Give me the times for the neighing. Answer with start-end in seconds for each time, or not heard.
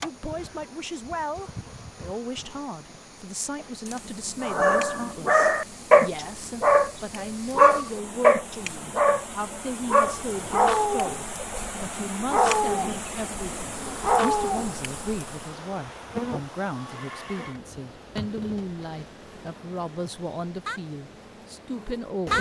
16.8-17.6.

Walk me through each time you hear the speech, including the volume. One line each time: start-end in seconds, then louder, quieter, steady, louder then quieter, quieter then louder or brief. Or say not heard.
0.0-22.3 steady.